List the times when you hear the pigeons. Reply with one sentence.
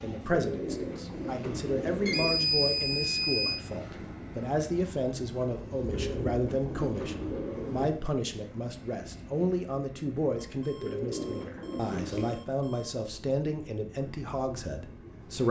The pigeons can be heard from 0.3 to 2.4 s, from 5.8 to 7.9 s and from 10.8 to 12.4 s.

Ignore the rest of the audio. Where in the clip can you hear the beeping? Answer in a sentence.
You can hear the beeping from 2.0 to 3.6 s, from 5.8 to 6.2 s and from 10.3 to 12.9 s.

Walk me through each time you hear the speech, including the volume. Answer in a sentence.
You can hear the speech from 0.0 to 15.4 s, at a steady volume.